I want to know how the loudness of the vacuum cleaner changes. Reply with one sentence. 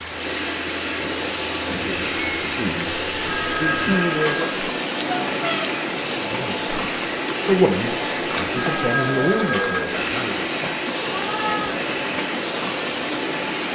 The volume of the vacuum cleaner stays about the same.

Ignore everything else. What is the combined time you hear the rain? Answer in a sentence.
The rain can be heard for 14 seconds in total.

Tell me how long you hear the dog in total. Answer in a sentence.
You can't hear the dog here.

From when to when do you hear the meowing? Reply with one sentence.
You can hear the meowing from 1.0 to 2.6 s, from 5.0 to 5.7 s and from 11.1 to 11.8 s.